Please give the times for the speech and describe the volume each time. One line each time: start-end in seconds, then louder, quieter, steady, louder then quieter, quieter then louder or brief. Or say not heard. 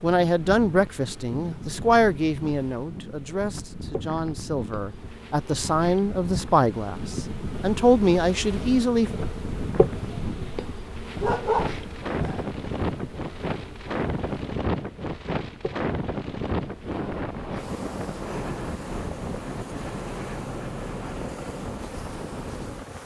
0.0-9.1 quieter then louder.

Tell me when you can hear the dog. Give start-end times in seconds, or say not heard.
11.2-12.4.